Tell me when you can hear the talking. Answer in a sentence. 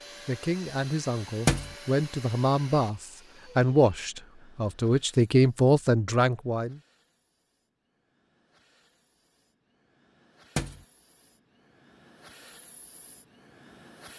The talking can be heard from 0.2 to 6.8 s.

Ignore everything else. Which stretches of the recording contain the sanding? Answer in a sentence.
You can't hear the sanding here.